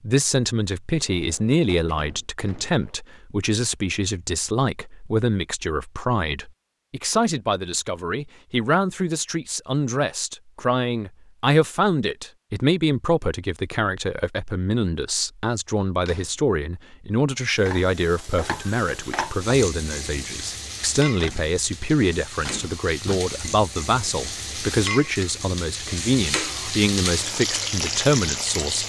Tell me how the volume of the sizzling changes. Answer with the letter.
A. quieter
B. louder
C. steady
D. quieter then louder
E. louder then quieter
B.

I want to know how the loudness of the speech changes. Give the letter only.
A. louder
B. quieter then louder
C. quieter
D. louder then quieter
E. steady
E.